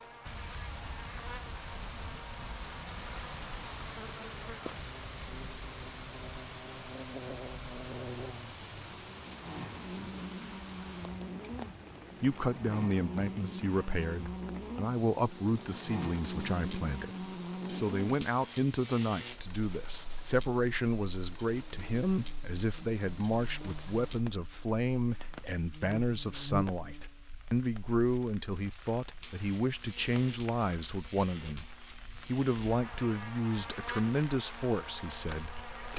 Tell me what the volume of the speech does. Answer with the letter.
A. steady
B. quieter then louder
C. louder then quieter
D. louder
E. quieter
A.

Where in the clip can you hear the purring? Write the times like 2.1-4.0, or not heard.
not heard.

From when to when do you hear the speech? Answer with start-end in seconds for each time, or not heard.
12.2-35.9.